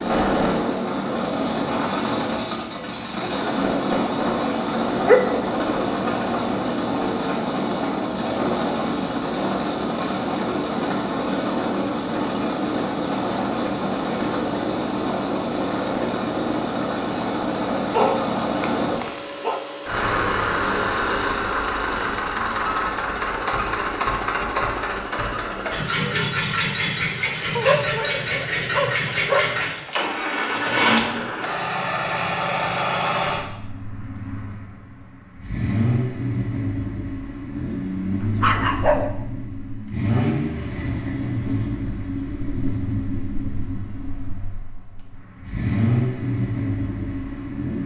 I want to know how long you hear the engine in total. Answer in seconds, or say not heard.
48 s.